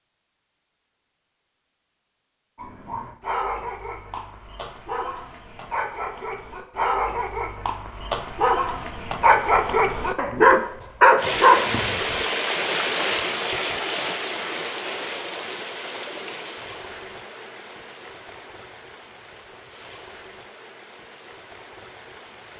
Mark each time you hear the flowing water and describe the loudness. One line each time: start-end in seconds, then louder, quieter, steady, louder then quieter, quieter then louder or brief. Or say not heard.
11.2-22.5 quieter.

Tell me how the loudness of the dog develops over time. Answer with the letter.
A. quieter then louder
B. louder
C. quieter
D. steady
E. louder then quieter
B.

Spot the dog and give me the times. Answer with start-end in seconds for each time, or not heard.
2.5-12.2.